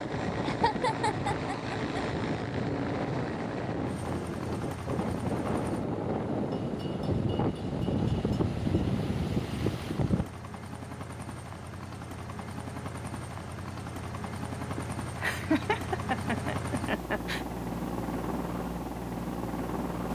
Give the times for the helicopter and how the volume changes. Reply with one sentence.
The helicopter can be heard from 0.0 to 20.1 s, getting quieter then louder.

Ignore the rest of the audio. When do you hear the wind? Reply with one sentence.
The wind can be heard from 0.0 to 10.2 s.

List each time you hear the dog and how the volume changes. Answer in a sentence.
You can't hear the dog here.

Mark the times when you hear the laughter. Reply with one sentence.
You can hear the laughter from 0.5 to 2.0 s and from 14.8 to 17.4 s.